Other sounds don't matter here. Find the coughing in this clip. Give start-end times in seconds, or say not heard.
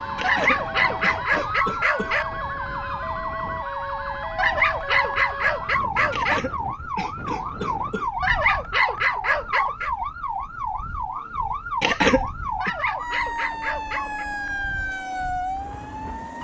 0.1-2.1, 6.1-8.1, 11.8-12.7.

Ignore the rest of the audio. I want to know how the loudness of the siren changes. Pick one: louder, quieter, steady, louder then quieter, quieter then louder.
steady.